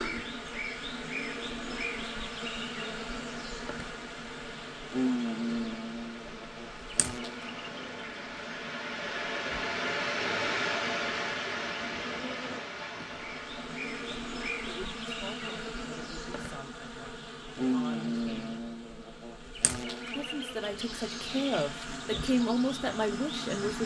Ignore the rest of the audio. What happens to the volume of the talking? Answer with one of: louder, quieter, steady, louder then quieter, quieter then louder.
louder.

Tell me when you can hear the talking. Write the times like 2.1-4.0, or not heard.
14.7-18.6, 20.1-23.8.